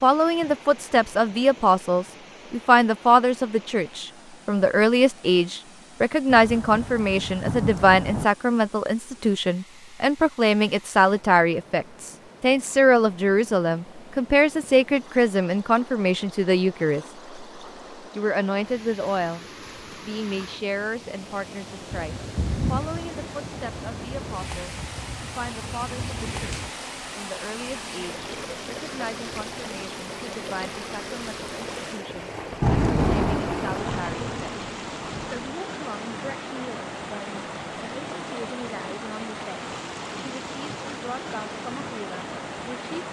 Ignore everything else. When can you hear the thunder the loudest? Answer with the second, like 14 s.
33 s.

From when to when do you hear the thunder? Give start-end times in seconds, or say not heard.
6.2-8.2, 21.9-26.7, 32.1-35.5.